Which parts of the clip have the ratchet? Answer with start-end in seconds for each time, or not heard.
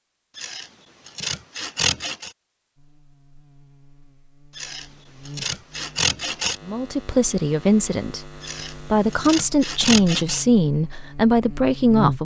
not heard.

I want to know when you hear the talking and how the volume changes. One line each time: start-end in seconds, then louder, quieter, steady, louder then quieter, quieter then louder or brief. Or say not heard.
6.7-12.1 quieter then louder.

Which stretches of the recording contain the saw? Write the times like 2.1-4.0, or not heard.
0.3-2.3, 4.5-6.5, 8.4-10.4.